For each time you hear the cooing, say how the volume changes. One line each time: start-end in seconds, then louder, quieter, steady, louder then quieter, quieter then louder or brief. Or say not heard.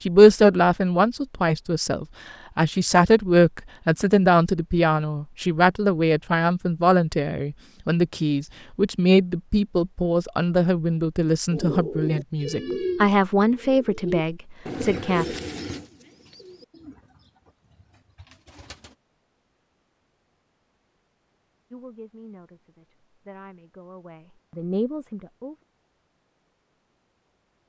11.5-18.9 quieter.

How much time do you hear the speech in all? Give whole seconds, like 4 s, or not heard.
19 s.